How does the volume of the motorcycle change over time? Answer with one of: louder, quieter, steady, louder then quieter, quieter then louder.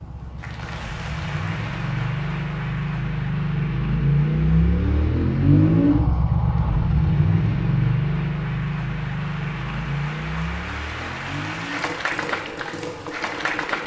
louder then quieter.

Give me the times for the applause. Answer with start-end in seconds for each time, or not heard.
0.0-13.8.